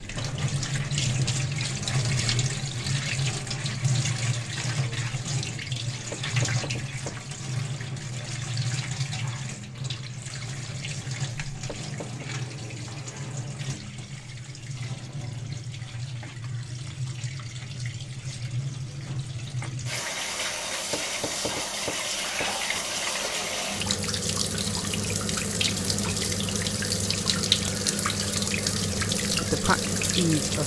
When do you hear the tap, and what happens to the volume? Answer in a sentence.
The tap can be heard from 0.0 to 30.6 s, getting quieter then louder.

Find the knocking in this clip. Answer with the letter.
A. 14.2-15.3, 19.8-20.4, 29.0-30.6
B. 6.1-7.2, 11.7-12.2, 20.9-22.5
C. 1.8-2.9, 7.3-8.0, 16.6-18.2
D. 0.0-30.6
B.